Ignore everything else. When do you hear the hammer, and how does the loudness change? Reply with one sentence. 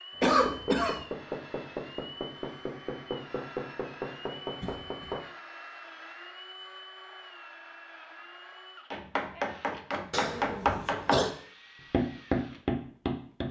The hammer can be heard from 0.1 to 5.2 s, at a steady volume; briefly from 8.9 to 11.3 s; and briefly from 11.9 to 13.4 s.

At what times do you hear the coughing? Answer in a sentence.
The coughing can be heard from 0.2 to 1.0 s, from 4.6 to 5.2 s and from 10.1 to 11.3 s.